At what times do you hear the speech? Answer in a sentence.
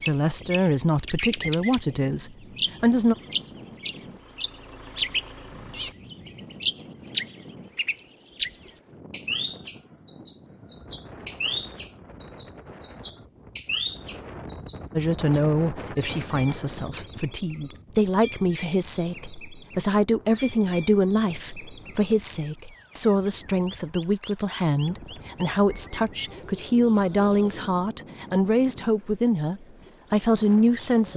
You can hear the speech from 0.0 to 3.1 s and from 14.9 to 31.1 s.